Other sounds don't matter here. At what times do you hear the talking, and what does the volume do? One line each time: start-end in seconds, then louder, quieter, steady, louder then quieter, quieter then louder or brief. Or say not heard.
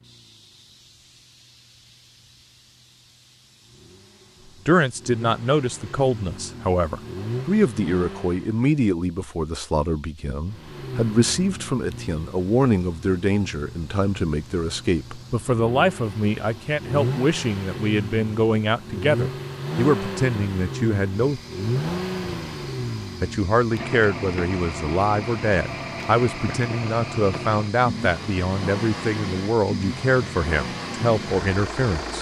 4.7-21.4 steady
23.2-32.1 steady.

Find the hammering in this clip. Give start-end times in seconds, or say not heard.
not heard.